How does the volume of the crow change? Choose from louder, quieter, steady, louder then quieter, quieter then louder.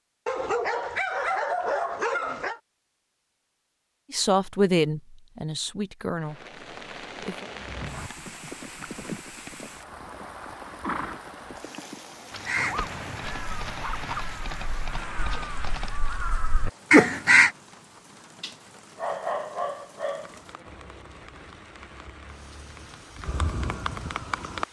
louder.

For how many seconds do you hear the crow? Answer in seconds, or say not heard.
5 s.